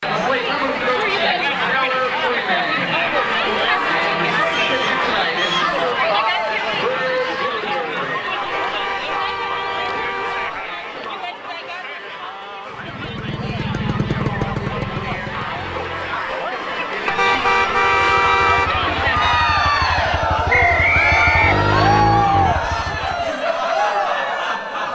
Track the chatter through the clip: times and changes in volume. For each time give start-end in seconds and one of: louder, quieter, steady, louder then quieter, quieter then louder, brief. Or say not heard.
0.0-24.9 quieter then louder.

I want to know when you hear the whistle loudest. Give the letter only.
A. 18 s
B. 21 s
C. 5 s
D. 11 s
B.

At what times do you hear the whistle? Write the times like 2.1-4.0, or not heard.
4.5-5.7, 20.5-22.1.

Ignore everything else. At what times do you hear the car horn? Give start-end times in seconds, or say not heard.
3.0-5.0, 8.4-10.6, 17.1-18.7.